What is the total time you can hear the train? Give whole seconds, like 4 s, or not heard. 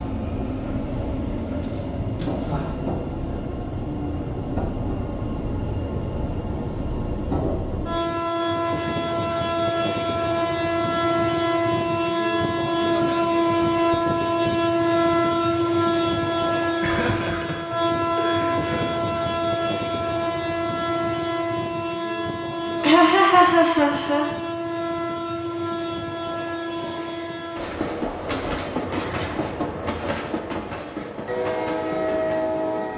33 s.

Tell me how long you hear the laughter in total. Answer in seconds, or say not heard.
5 s.